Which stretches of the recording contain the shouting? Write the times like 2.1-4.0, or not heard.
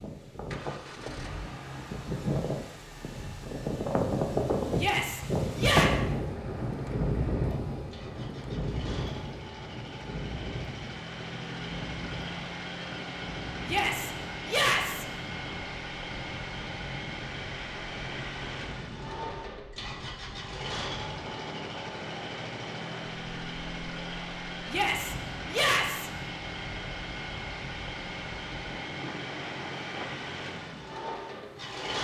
4.8-5.9, 13.7-15.1, 24.6-26.1.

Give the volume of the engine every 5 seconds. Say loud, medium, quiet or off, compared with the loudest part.
medium, medium, loud, loud, loud, loud, loud.